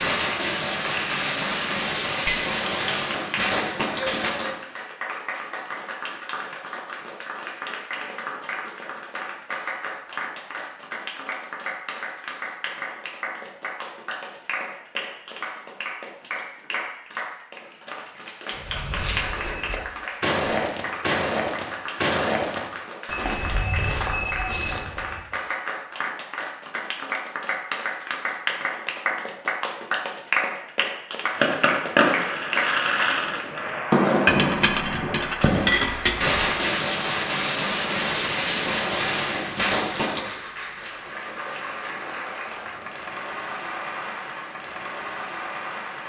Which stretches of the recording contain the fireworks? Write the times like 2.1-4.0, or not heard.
0.0-4.5, 31.3-40.2.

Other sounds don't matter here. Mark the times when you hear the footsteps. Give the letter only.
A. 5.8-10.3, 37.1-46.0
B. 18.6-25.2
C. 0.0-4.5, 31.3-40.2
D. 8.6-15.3
B.